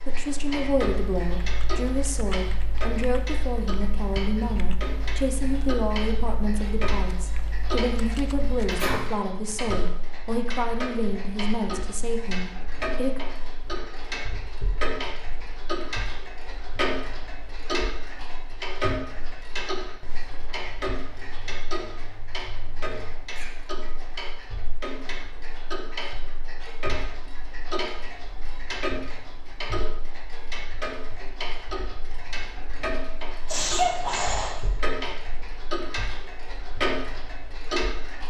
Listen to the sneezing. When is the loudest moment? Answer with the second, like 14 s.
34 s.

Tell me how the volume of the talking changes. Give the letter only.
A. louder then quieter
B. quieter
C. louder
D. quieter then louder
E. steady
E.